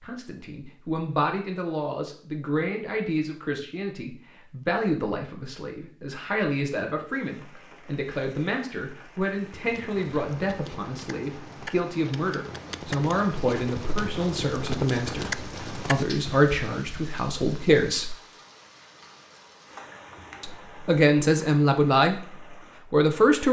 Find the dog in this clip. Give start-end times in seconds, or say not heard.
not heard.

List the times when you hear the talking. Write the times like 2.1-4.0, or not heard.
0.0-18.1, 20.4-22.2, 22.9-23.4.